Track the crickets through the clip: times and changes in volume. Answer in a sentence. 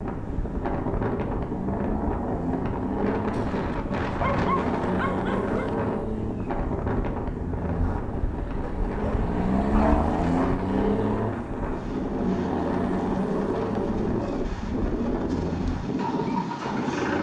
You can't hear the crickets here.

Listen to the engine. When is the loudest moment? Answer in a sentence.
The loudest moment of the engine is at 10 seconds.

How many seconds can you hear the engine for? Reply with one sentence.
The engine can be heard for 17 seconds in total.